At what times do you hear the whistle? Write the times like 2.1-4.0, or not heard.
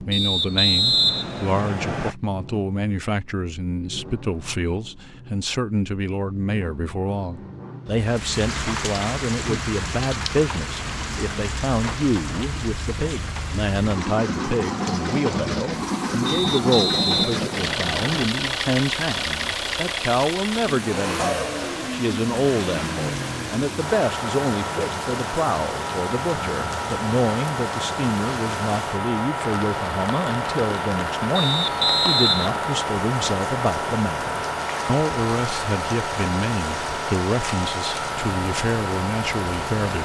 0.1-2.1, 16.2-18.2, 31.4-32.6.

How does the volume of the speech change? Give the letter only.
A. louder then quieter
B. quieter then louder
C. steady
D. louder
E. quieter
C.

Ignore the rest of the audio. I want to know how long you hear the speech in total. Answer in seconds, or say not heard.
40 s.